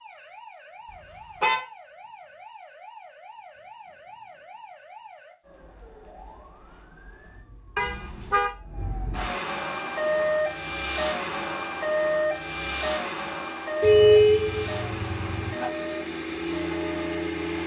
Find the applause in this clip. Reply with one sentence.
You can't hear the applause here.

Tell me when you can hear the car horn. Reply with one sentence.
The car horn can be heard from 0.9 to 1.6 s, from 7.8 to 8.5 s and from 13.8 to 15.7 s.